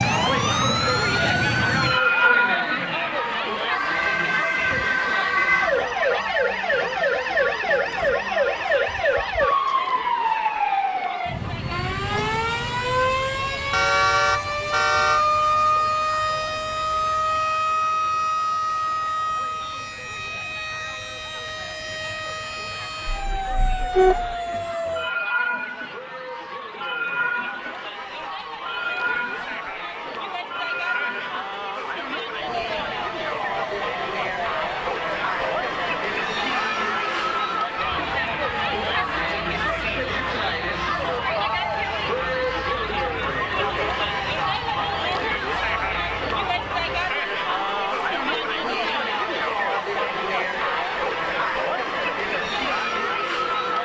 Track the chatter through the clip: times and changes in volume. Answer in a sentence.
You can hear the chatter from 0.0 to 53.8 s, getting quieter then louder.